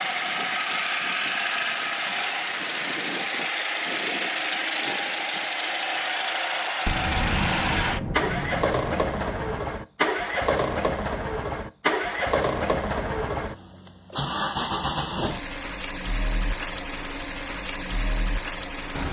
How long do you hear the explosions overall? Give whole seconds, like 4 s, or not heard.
3 s.